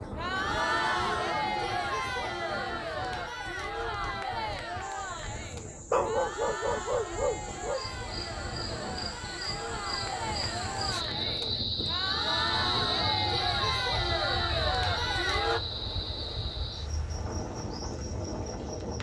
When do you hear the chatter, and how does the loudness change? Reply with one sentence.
The chatter can be heard from 0.0 to 15.6 s, getting quieter then louder.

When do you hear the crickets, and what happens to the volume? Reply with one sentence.
You can hear the crickets from 4.8 to 18.9 s, getting louder then quieter.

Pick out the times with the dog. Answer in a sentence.
The dog can be heard from 5.9 to 7.8 s.